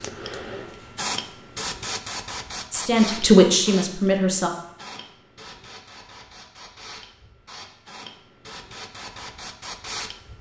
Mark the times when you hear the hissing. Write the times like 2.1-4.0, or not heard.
0.0-10.3.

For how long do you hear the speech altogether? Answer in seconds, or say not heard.
2 s.